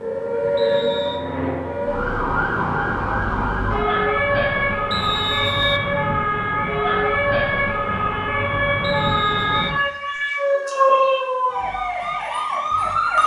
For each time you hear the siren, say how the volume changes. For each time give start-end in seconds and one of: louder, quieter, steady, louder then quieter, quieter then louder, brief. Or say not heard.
0.0-13.2 steady.